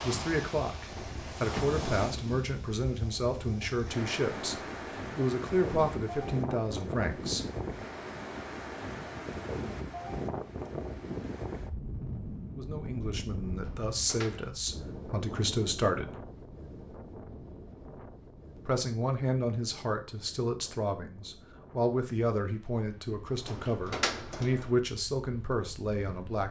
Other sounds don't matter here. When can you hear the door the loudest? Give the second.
24 s.